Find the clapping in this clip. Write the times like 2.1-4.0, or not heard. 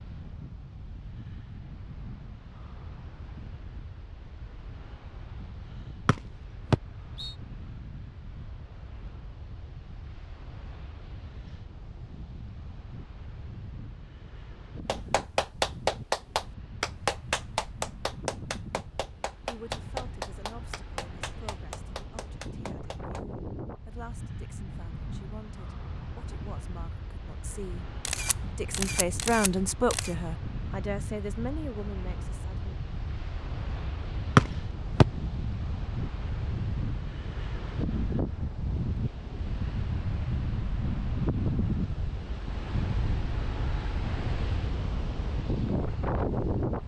14.8-23.2.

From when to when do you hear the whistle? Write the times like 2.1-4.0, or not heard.
6.0-7.3, 34.4-35.0.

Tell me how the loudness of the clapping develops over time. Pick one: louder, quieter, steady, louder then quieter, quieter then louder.
quieter.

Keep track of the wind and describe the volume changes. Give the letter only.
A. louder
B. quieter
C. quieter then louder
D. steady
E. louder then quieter
A.